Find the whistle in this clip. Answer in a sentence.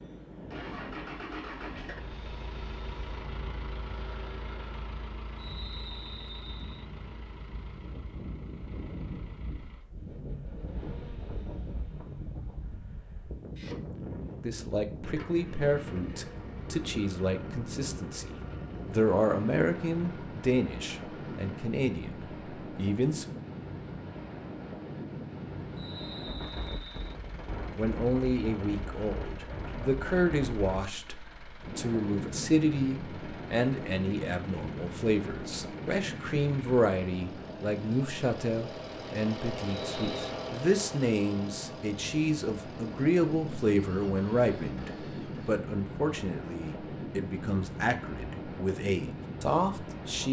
You can hear the whistle from 5.3 to 6.8 s, from 25.8 to 27.1 s and from 39.9 to 40.4 s.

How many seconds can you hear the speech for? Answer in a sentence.
The speech can be heard for 31 seconds in total.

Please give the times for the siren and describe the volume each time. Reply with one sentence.
You can't hear the siren here.